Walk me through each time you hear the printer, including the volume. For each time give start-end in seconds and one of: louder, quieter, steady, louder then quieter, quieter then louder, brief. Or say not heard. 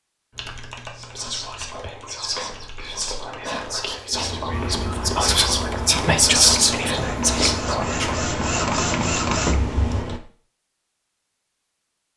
4.5-10.1 louder.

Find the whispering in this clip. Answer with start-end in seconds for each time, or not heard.
0.9-8.2.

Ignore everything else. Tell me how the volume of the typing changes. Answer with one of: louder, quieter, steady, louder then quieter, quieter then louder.
louder.